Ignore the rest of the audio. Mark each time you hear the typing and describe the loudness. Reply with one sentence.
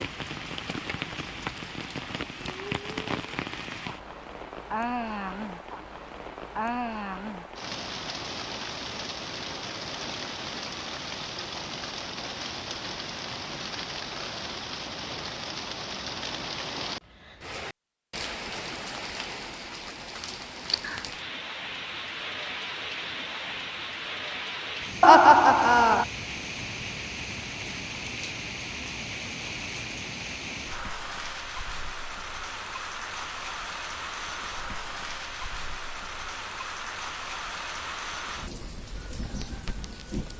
The typing can't be heard in this clip.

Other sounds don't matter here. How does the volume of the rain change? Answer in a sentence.
The loudness of the rain stays about the same.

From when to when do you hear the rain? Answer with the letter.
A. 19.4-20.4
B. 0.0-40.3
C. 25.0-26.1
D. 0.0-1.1
B.